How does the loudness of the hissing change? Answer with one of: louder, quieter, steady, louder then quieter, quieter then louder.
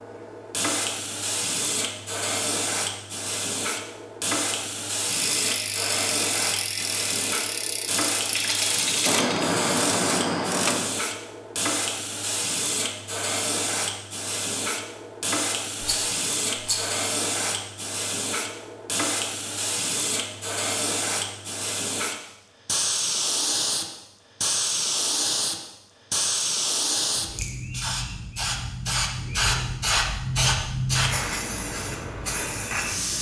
steady.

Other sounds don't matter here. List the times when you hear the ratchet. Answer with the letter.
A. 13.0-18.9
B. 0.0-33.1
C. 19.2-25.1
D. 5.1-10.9
D.